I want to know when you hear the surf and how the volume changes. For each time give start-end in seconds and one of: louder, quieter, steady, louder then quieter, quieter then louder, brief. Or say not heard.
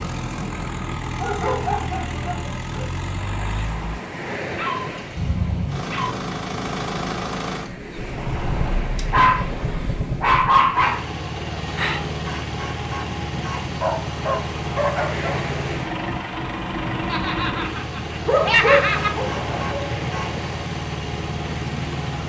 0.0-22.2 steady.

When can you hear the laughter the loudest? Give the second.
19 s.